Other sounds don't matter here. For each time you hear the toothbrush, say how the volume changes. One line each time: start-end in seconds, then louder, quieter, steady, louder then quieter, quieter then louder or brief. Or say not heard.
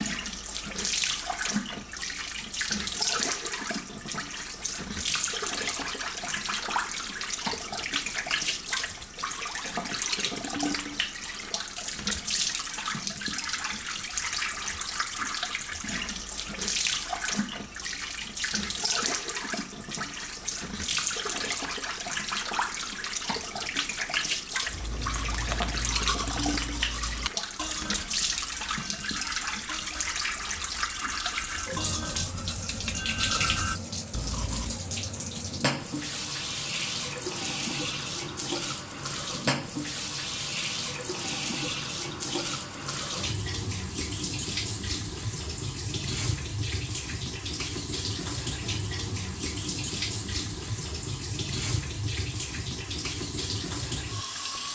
24.6-34.8 quieter then louder.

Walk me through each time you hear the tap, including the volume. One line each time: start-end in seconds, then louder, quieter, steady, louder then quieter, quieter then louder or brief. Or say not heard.
0.0-54.7 steady.